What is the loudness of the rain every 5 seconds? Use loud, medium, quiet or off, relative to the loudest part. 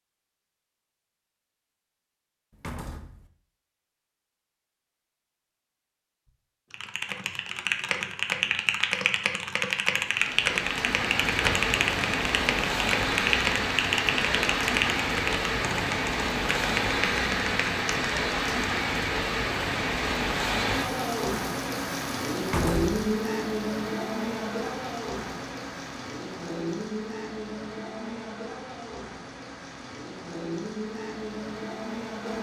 off, off, loud, loud, loud, medium, medium.